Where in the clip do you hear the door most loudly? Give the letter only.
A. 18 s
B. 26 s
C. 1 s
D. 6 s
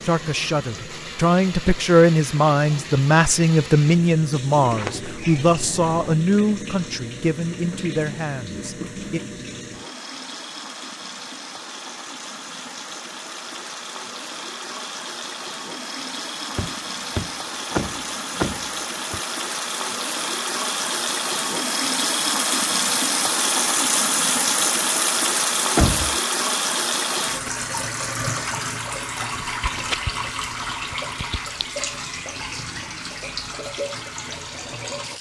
B.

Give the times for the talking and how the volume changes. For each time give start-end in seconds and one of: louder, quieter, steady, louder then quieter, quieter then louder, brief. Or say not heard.
0.0-9.2 quieter.